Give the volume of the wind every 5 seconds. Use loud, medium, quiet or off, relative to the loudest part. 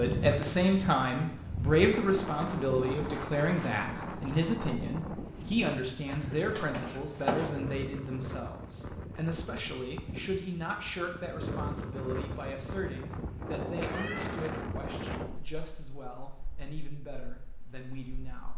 loud, medium, loud, medium.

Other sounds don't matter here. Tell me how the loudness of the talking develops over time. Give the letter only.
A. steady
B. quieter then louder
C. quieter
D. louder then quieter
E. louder
C.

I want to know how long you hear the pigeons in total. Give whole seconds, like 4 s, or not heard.
not heard.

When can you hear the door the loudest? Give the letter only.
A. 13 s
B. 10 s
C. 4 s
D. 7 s
D.